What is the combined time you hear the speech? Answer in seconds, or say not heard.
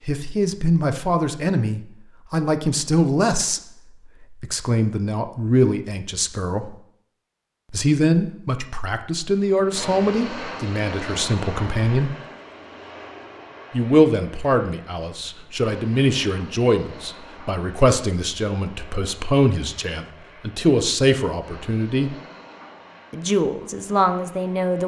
21 s.